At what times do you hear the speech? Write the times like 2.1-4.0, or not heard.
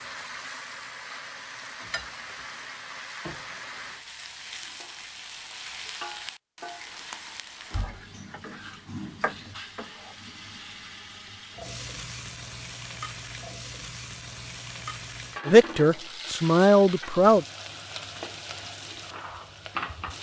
15.4-17.4.